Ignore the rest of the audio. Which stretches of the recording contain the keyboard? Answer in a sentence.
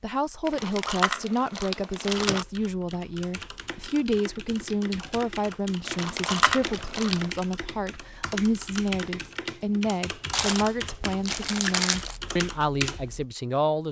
You can hear the keyboard from 2.0 to 13.2 s.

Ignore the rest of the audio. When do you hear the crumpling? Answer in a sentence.
The crumpling can be heard from 0.5 to 2.5 s, from 5.8 to 7.3 s and from 10.3 to 12.2 s.